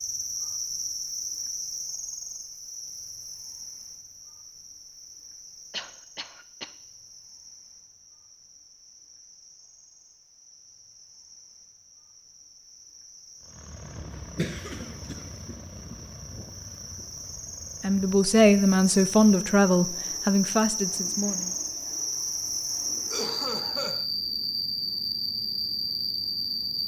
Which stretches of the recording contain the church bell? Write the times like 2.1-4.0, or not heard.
not heard.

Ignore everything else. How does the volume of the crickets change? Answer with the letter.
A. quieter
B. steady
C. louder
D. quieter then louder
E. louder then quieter
D.